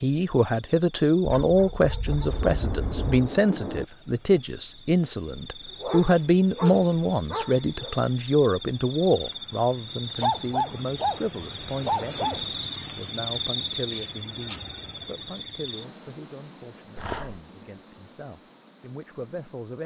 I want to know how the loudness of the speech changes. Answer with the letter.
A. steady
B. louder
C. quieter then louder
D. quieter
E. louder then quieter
D.